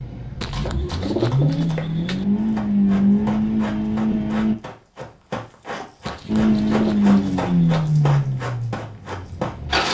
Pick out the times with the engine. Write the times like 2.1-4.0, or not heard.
0.0-4.5, 6.2-9.9.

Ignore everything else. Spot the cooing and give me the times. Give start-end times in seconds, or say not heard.
0.4-2.2, 6.0-7.9.